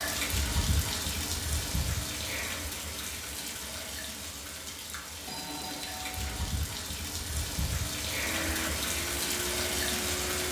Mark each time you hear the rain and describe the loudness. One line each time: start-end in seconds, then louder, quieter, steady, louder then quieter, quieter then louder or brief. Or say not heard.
0.0-10.4 quieter then louder.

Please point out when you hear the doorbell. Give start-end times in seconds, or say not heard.
5.2-6.5.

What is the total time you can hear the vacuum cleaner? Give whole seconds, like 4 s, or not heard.
2 s.